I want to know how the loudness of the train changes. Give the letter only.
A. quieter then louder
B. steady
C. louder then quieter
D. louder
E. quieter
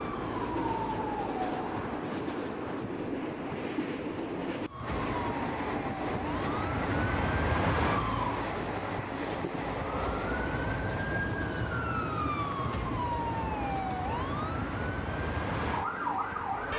E.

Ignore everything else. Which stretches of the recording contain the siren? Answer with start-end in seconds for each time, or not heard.
0.0-1.9, 4.7-8.4, 9.7-16.7.